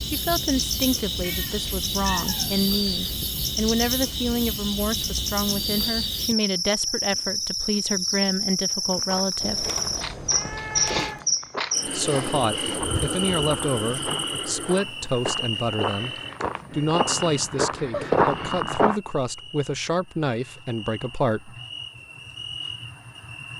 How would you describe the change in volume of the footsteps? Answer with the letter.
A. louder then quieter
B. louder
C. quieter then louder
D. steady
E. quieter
B.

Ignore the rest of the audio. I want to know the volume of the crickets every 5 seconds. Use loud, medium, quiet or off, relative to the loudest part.
loud, loud, loud, medium, quiet.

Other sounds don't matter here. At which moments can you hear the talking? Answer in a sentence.
You can hear the talking from 0.0 to 9.7 s and from 11.8 to 21.6 s.